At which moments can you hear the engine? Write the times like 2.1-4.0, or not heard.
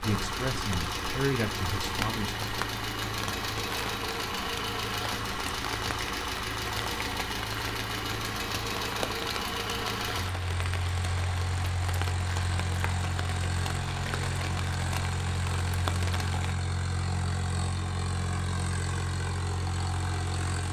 0.0-20.6.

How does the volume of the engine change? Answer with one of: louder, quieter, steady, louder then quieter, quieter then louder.
steady.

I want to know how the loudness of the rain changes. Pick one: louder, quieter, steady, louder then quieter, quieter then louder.
steady.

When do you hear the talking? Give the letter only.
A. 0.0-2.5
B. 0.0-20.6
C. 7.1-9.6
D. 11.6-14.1
A.